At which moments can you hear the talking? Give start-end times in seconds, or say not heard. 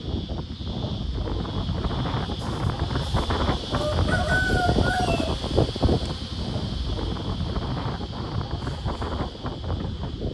not heard.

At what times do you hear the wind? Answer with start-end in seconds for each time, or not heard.
0.0-10.2.